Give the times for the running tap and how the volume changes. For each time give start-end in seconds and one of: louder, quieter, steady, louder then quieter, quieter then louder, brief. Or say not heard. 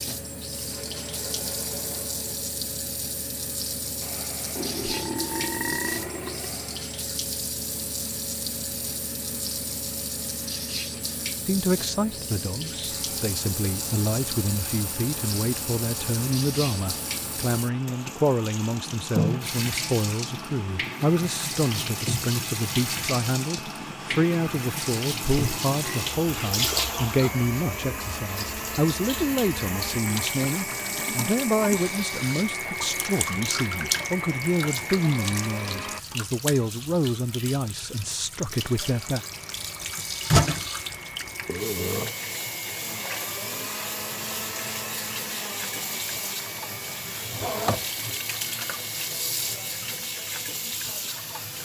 0.0-51.6 steady.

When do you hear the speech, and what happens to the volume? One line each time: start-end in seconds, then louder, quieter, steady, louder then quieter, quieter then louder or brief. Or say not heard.
11.4-39.2 steady.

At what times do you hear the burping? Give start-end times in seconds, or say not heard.
4.5-6.5, 25.4-26.1, 41.5-42.1.